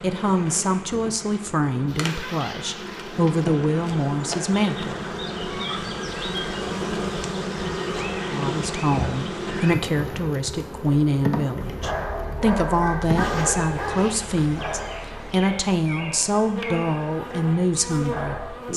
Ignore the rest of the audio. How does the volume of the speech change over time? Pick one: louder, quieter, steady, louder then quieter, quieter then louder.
steady.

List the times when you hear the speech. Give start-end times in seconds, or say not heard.
0.0-5.7, 8.3-18.7.